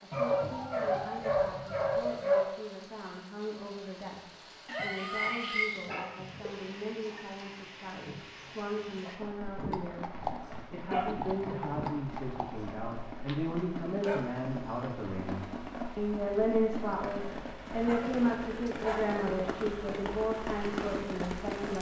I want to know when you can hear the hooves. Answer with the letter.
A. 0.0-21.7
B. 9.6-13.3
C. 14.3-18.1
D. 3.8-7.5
B.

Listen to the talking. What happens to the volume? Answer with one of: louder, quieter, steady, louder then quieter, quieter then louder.
louder.